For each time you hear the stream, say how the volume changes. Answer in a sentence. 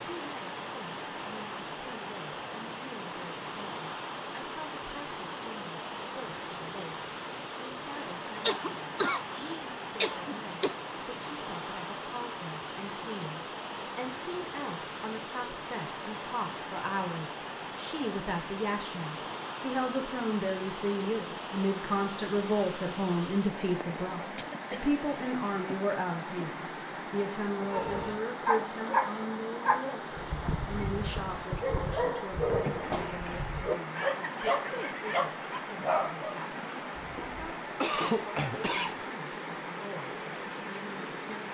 The stream can be heard from 0.0 to 41.4 s, at a steady volume.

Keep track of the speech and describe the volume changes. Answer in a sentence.
The loudness of the speech goes up, then down.